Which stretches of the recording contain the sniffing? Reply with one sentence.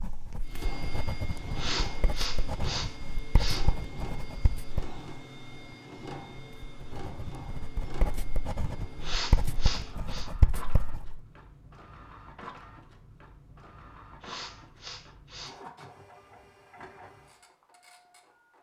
You can hear the sniffing from 1.6 to 3.7 s, from 9.0 to 10.3 s and from 14.2 to 15.6 s.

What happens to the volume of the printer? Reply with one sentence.
The volume of the printer goes down.